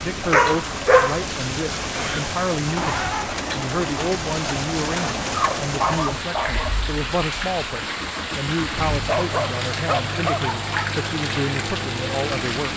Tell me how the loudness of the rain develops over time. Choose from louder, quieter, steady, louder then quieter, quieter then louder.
steady.